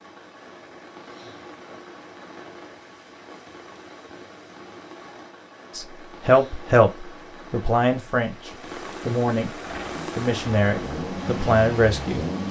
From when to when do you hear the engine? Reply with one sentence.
The engine can be heard from 9.5 to 12.4 s.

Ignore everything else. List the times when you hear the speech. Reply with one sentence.
The speech can be heard from 5.7 to 12.4 s.